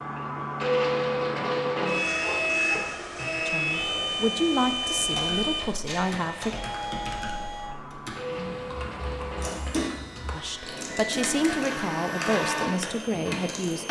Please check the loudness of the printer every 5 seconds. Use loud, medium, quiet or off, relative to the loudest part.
loud, medium, medium.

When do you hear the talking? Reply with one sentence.
The talking can be heard from 3.5 to 6.5 s and from 10.3 to 13.8 s.